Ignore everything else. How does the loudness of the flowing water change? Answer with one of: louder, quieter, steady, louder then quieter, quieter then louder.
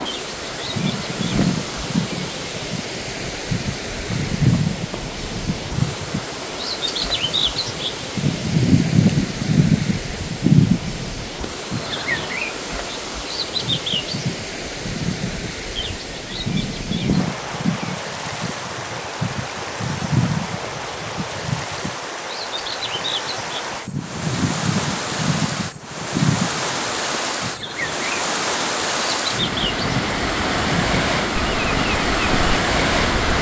louder.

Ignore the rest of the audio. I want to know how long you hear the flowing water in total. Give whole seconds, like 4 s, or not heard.
33 s.